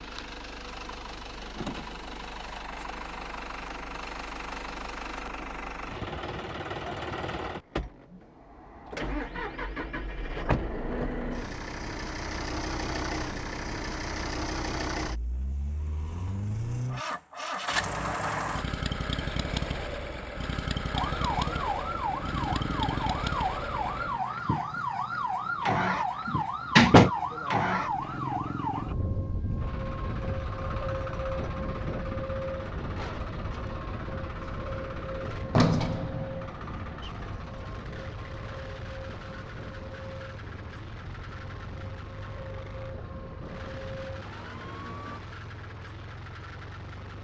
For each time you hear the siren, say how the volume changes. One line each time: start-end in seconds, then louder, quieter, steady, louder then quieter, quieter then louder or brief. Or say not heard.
20.9-45.2 quieter.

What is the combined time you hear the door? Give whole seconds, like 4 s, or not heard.
4 s.